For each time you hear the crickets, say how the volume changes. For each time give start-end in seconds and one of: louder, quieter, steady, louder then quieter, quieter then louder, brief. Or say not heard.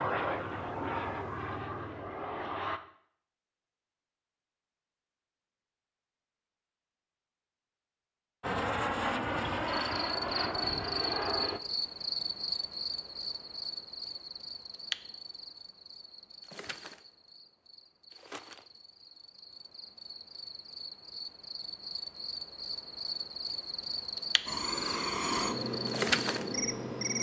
9.7-27.1 quieter then louder.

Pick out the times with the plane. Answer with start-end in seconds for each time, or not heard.
0.0-2.8, 8.4-11.6, 24.4-27.1.